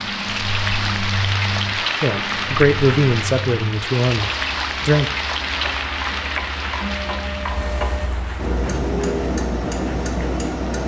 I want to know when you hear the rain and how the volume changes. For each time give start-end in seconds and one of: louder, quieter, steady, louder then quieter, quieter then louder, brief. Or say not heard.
0.0-10.8 quieter.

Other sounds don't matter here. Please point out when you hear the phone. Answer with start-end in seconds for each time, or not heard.
not heard.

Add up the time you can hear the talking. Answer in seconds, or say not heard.
3 s.